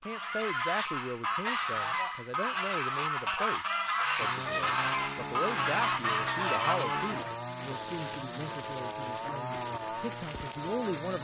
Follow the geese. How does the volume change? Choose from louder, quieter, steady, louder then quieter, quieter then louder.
steady.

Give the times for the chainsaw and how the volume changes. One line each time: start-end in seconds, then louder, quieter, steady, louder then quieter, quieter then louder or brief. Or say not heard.
4.2-11.2 steady.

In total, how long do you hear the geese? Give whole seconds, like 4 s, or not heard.
7 s.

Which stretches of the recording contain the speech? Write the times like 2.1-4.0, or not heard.
0.0-11.2.